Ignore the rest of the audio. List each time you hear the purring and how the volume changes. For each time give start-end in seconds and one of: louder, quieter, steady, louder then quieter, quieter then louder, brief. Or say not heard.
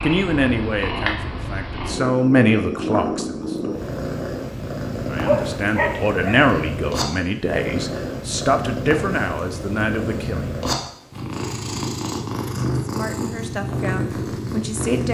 0.0-15.0 steady.